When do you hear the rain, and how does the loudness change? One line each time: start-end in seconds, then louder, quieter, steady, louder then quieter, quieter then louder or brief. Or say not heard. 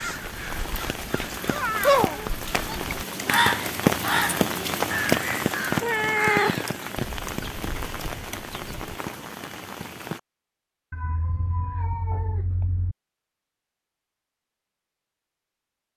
0.0-10.2 louder then quieter.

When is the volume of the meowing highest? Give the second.
6 s.